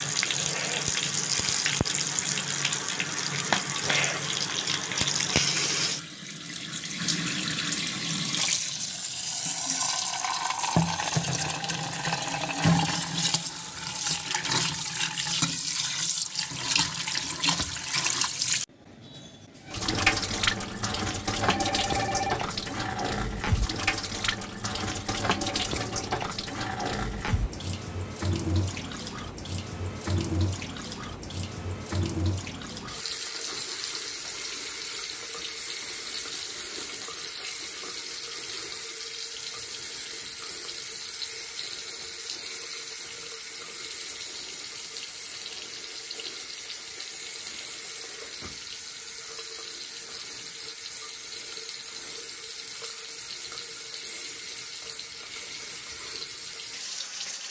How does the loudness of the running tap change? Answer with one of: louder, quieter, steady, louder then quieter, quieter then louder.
quieter.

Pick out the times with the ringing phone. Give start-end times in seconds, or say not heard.
21.4-22.4.